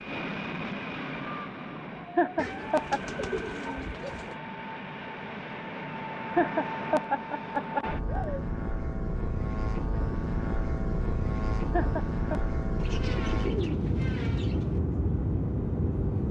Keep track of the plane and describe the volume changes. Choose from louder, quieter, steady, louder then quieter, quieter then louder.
louder.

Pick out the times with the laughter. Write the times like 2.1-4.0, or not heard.
2.1-3.0, 6.3-8.4, 11.7-12.4.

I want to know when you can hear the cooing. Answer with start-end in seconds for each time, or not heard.
2.4-4.3, 12.8-14.8.